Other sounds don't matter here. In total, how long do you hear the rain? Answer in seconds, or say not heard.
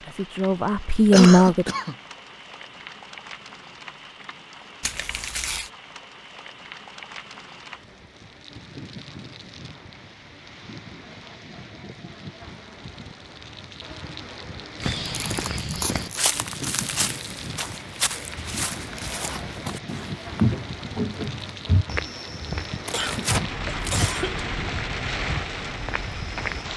27 s.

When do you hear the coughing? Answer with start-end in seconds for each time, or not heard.
1.1-1.9, 22.9-24.4.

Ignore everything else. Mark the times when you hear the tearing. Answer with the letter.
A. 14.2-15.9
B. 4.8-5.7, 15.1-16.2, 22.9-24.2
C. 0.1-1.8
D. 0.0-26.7
B.